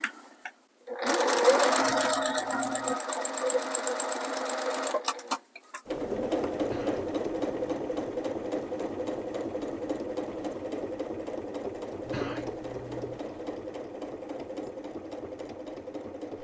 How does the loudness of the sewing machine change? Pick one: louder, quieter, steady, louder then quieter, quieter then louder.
quieter.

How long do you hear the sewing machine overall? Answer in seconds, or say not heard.
16 s.